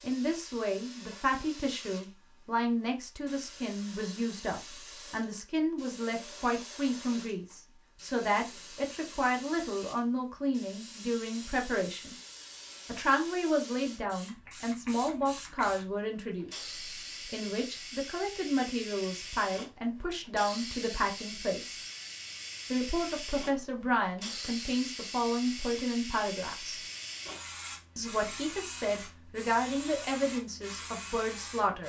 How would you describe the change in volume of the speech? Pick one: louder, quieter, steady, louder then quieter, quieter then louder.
steady.